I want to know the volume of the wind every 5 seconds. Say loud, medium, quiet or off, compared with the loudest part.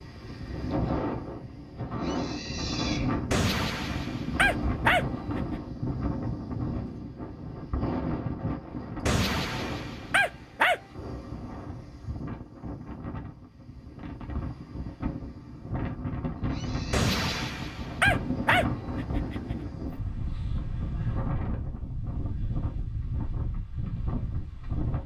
loud, loud, medium, loud, loud.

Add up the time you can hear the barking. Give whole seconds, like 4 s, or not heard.
6 s.